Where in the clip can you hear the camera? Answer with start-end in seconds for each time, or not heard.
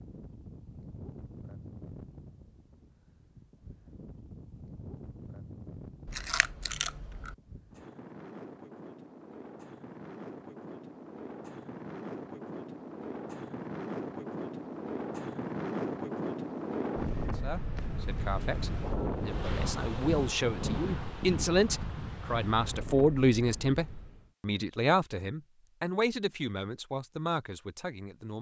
6.0-7.3.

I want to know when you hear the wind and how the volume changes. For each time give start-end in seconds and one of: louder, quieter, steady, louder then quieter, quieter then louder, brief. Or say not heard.
0.0-24.3 louder.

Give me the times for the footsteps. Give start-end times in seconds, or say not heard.
not heard.